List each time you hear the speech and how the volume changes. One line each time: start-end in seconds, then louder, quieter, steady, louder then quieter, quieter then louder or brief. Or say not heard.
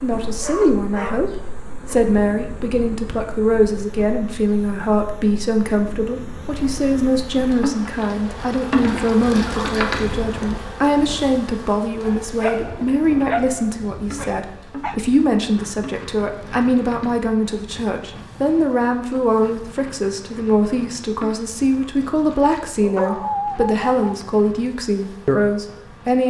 0.0-26.2 steady.